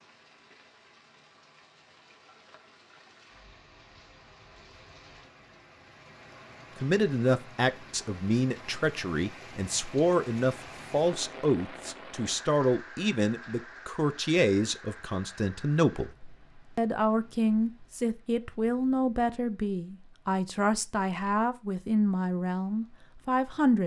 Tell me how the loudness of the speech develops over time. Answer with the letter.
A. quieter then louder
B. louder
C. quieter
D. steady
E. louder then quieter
D.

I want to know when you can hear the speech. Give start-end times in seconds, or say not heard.
6.8-16.1, 16.8-23.8.